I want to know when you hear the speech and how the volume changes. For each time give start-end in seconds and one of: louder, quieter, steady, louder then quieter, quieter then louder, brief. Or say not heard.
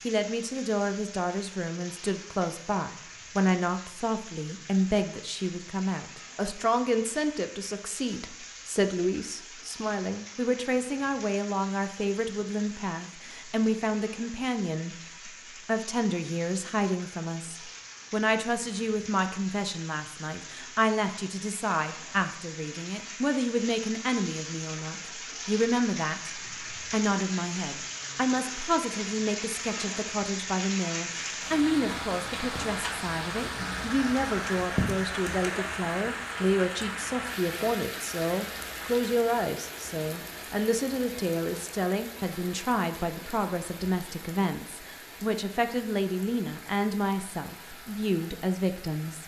0.1-49.2 steady.